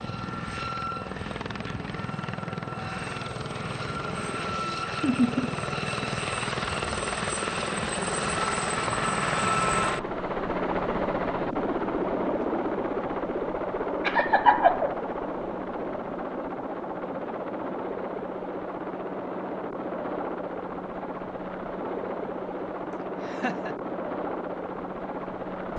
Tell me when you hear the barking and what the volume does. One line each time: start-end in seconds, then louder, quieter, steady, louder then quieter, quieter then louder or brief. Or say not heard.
not heard.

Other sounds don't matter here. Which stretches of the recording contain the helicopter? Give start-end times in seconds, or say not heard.
0.0-25.7.